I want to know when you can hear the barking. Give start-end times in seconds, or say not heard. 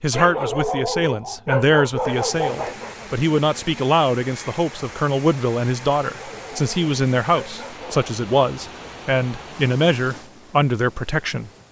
0.1-3.0, 6.0-8.1.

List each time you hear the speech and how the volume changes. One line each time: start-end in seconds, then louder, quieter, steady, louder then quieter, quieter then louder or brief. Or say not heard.
0.0-11.5 steady.